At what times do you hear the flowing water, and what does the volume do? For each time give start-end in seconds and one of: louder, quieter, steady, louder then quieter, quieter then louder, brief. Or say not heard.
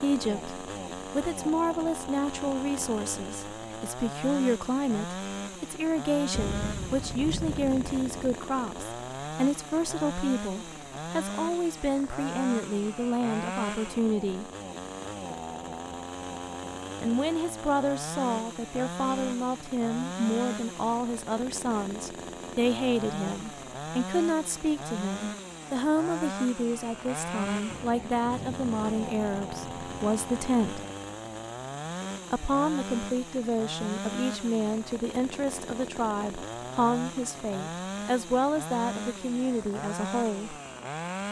not heard.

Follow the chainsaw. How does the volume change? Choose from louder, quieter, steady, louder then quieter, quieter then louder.
steady.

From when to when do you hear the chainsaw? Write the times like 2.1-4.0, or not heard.
0.0-41.2.